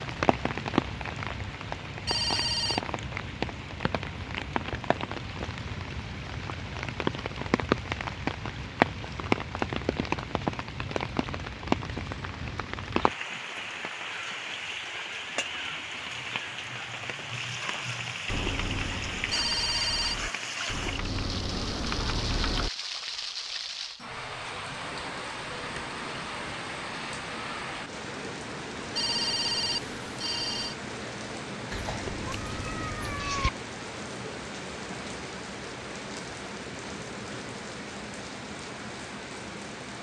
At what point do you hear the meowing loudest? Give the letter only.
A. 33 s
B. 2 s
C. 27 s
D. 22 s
A.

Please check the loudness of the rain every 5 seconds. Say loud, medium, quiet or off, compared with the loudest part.
loud, loud, loud, medium, medium, medium, medium, medium.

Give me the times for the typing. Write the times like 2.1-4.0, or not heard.
16.1-22.7.